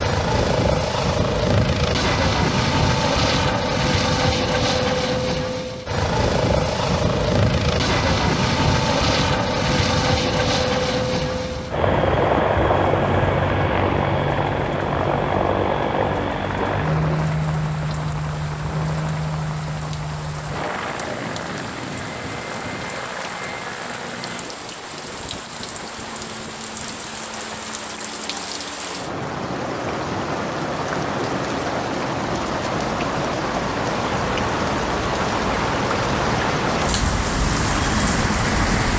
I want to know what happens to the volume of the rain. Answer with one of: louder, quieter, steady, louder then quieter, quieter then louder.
louder.